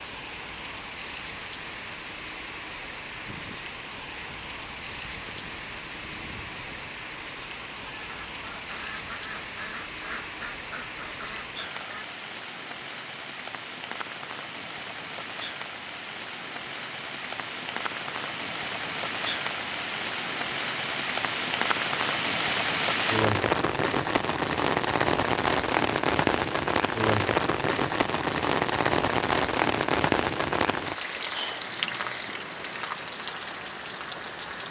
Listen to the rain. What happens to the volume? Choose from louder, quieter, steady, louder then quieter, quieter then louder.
louder.